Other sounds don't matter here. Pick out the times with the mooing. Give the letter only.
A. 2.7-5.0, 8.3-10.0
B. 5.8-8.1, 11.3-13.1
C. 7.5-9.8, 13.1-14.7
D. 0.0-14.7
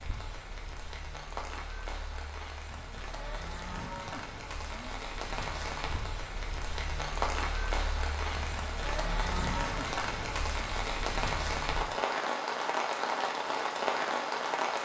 A.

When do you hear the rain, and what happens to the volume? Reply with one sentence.
The rain can be heard from 0.0 to 14.7 s, getting louder.